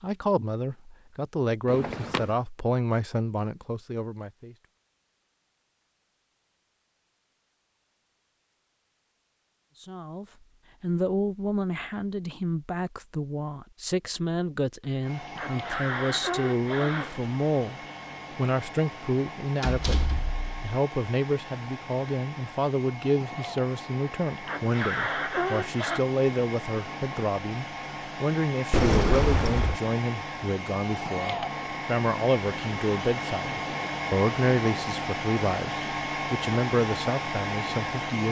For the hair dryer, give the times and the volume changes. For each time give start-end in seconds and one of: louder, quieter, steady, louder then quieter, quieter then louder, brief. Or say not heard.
15.0-38.2 louder.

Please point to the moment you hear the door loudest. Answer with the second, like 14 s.
29 s.